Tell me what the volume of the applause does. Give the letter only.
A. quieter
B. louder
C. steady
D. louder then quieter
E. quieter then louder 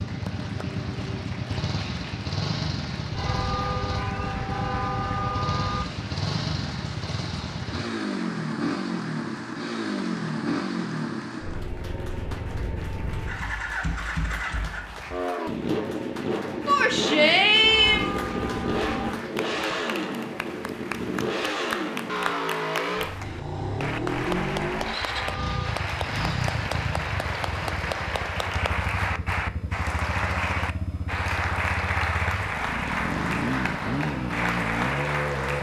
B.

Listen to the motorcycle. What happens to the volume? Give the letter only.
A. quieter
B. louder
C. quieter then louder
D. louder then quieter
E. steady
E.